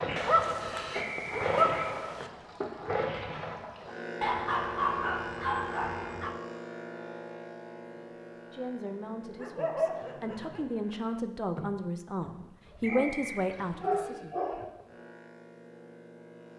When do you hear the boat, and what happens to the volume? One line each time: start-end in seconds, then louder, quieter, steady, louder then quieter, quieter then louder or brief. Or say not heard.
0.0-16.5 quieter.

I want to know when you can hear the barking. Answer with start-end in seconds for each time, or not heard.
0.1-2.3, 4.2-6.3, 9.3-10.7, 12.7-14.7.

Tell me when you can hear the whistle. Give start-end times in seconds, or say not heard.
0.9-1.9, 12.8-13.5.